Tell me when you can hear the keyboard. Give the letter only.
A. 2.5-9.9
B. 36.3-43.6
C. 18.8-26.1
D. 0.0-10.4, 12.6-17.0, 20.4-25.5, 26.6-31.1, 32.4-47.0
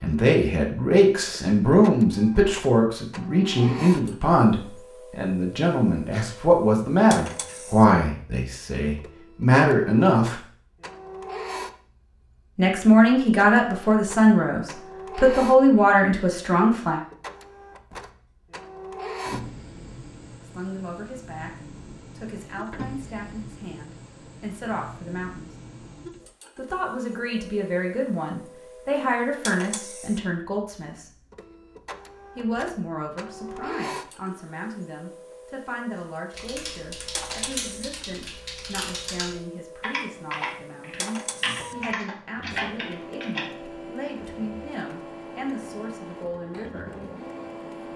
B.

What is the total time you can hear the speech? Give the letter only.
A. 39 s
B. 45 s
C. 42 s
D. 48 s
A.